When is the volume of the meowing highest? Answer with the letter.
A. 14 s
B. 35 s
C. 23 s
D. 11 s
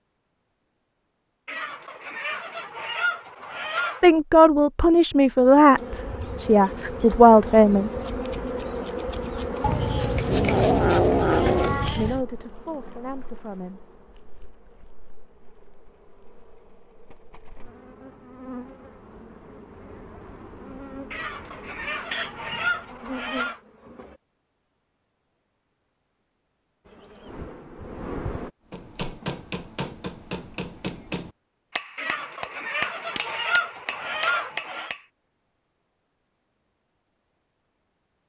D.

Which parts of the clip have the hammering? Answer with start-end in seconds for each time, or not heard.
28.7-35.0.